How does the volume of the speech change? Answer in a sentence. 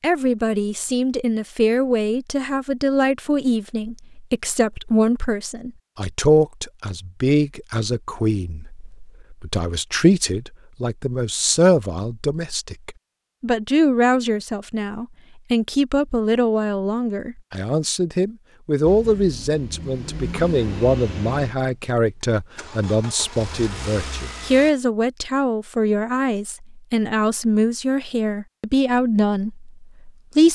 The loudness of the speech stays about the same.